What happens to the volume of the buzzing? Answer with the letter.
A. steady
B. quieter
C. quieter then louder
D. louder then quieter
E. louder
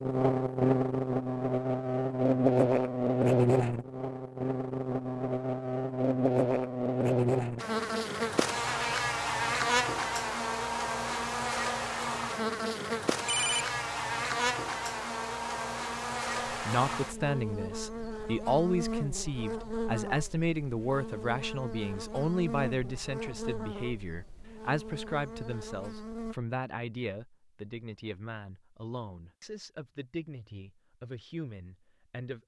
B.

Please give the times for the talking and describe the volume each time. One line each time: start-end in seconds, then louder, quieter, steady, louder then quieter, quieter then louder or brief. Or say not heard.
16.5-32.4 quieter.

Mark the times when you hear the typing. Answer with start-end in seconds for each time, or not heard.
not heard.